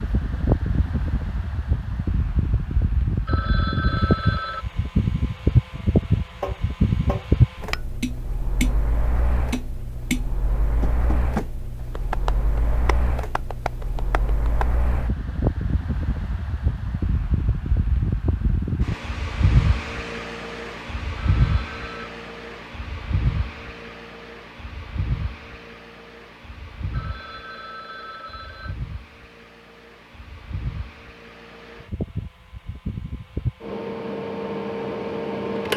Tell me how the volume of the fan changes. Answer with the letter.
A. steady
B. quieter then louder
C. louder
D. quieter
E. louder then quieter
D.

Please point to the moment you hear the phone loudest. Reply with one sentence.
The loudest moment of the phone is at 4 seconds.